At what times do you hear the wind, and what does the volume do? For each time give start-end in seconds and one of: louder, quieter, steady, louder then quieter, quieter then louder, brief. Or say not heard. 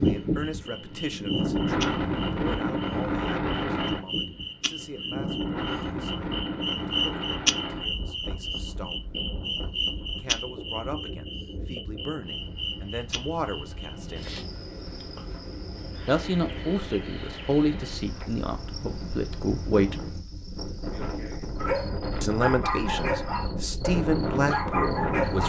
0.0-25.4 quieter then louder.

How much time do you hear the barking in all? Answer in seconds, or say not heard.
4 s.